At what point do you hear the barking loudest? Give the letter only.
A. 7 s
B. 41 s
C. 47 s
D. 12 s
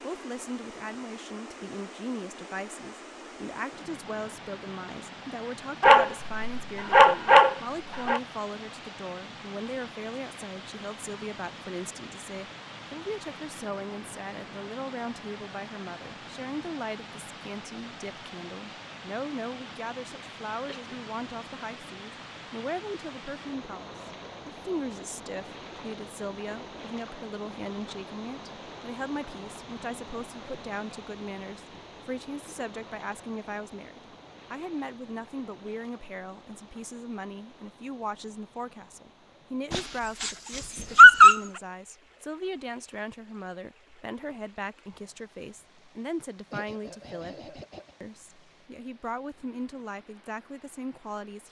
B.